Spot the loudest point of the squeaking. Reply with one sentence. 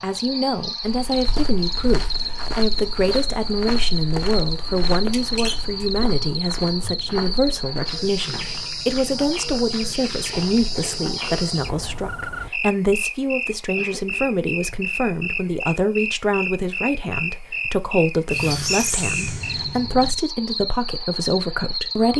The loudest moment of the squeaking is at 19 seconds.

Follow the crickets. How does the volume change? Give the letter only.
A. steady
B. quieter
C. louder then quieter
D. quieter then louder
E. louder
A.